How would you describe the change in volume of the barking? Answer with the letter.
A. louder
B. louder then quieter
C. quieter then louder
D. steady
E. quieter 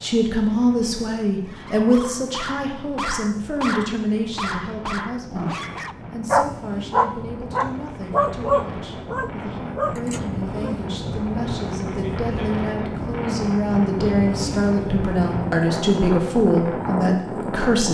B.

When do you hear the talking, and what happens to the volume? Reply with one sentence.
You can hear the talking from 0.0 to 17.9 s, getting quieter then louder.